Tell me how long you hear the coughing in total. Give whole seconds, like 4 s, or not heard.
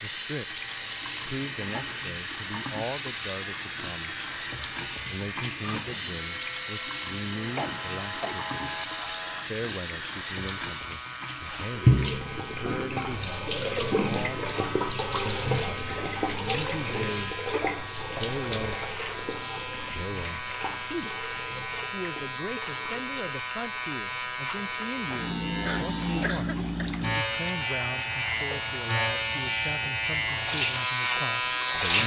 3 s.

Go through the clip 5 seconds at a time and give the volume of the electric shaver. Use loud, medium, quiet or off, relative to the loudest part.
quiet, quiet, quiet, medium, medium, loud, loud.